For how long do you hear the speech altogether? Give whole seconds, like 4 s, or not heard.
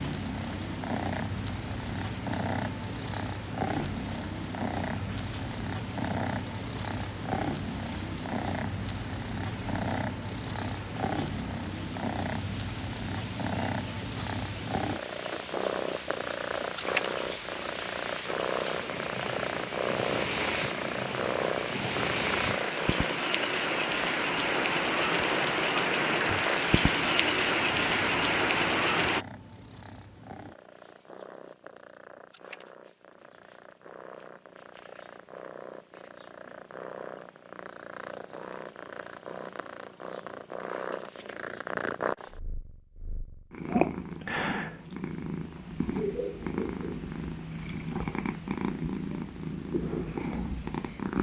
not heard.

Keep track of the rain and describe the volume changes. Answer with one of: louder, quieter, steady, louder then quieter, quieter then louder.
louder.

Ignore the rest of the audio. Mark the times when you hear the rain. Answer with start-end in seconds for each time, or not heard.
0.0-29.2.